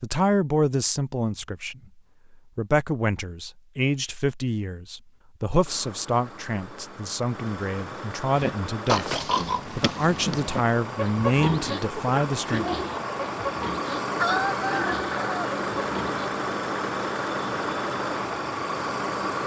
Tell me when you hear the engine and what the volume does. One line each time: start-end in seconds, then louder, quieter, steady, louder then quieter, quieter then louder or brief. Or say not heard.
5.6-19.4 louder.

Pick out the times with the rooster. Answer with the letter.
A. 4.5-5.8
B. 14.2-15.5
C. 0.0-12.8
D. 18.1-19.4
B.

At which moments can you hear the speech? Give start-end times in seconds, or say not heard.
0.0-12.8.